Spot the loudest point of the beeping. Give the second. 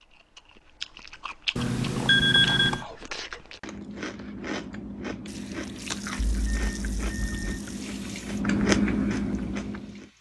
2 s.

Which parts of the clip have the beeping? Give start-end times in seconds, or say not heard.
1.6-2.9, 6.4-7.6.